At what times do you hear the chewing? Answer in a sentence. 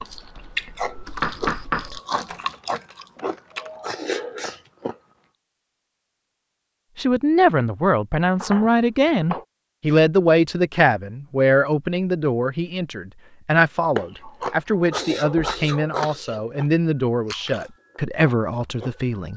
The chewing can be heard from 0.0 to 5.0 s and from 13.9 to 19.3 s.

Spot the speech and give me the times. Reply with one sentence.
You can hear the speech from 7.0 to 19.3 s.